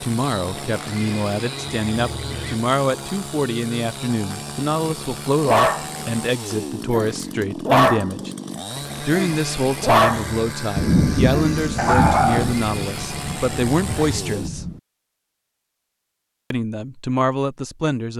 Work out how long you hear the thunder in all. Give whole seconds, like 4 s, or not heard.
4 s.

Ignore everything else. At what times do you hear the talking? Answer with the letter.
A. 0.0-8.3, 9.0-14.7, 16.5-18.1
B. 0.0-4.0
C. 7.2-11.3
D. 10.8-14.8
A.